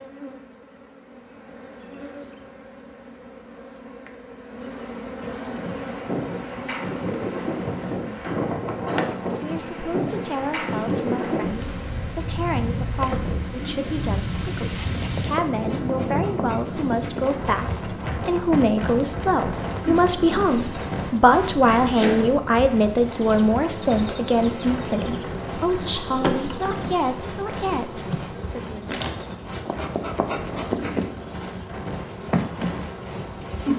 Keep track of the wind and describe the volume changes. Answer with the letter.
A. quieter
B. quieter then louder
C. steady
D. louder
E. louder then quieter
A.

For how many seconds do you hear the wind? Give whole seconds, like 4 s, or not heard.
28 s.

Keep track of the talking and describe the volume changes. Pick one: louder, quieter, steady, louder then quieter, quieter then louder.
louder then quieter.